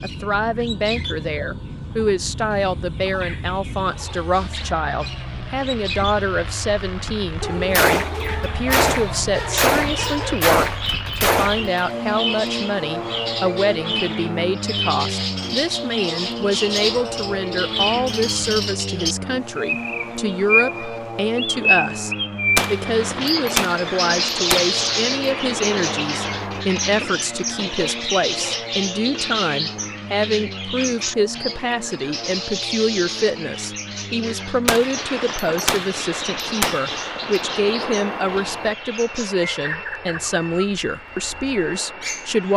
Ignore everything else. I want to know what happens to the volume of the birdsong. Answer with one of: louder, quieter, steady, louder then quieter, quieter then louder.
louder then quieter.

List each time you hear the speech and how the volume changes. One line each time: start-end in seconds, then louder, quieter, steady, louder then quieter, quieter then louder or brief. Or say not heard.
0.0-42.5 steady.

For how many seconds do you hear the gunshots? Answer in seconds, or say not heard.
12 s.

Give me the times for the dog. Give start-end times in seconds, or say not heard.
7.4-10.4, 27.8-28.6.